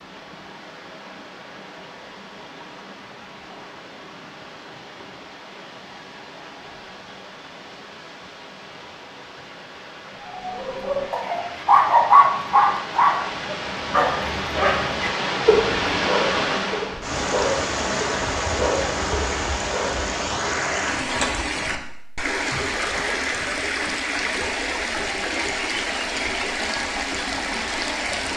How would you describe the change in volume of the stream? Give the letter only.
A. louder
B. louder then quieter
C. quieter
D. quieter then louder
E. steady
A.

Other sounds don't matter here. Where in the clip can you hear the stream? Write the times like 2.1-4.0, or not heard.
0.0-28.3.